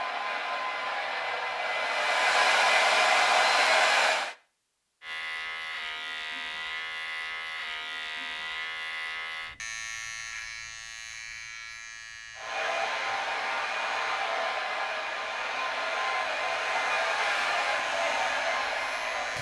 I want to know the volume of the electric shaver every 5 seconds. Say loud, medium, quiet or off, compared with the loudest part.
off, loud, medium, medium.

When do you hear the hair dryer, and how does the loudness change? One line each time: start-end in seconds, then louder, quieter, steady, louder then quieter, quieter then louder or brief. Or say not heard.
0.0-4.3 louder
12.3-19.3 steady.